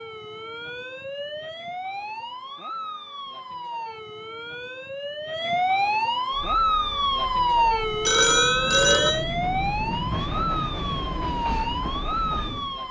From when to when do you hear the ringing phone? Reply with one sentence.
You can hear the ringing phone from 8.1 to 9.2 s.